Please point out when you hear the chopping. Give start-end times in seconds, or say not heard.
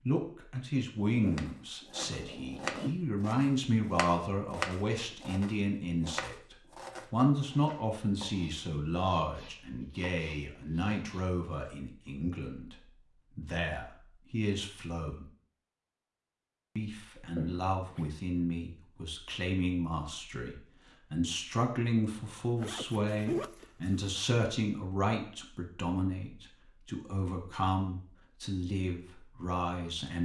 1.3-11.8.